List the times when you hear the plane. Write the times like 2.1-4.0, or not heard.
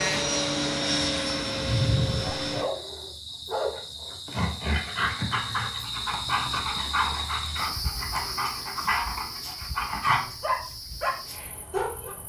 0.0-2.7.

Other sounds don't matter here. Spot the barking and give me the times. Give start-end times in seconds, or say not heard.
2.2-12.2.